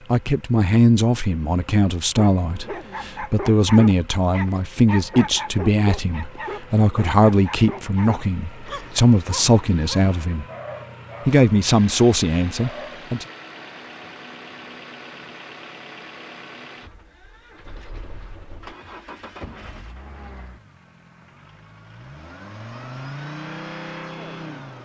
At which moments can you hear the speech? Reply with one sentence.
You can hear the speech from 0.1 to 10.4 s and from 11.2 to 13.2 s.